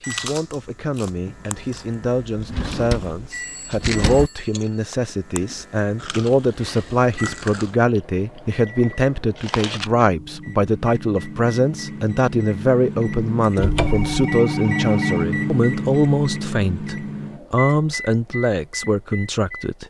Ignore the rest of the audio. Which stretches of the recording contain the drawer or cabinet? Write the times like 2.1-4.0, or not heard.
2.4-4.3, 13.6-14.1.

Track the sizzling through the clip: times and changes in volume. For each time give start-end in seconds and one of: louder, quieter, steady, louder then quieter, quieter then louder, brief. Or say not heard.
not heard.